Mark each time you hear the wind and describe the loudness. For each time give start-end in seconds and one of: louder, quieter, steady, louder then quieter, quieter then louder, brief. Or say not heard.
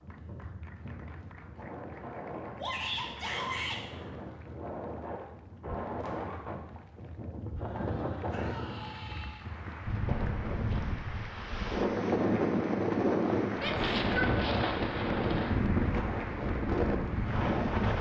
0.0-17.9 louder.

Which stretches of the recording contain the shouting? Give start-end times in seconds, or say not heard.
2.5-3.8, 8.3-9.4, 13.6-14.3.